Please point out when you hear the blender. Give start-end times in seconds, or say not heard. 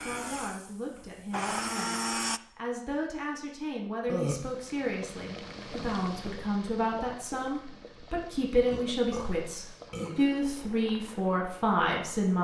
0.0-2.4.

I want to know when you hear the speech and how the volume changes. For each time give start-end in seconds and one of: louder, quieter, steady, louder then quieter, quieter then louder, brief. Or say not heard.
0.0-12.3 louder.